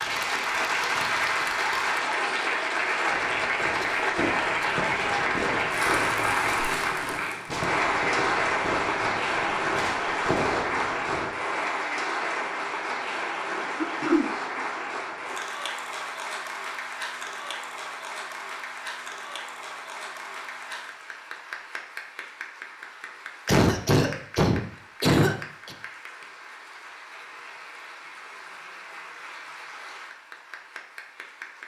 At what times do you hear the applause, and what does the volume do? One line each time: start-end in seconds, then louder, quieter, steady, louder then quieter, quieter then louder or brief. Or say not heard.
0.0-31.6 quieter.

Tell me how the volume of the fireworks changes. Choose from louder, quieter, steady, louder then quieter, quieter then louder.
steady.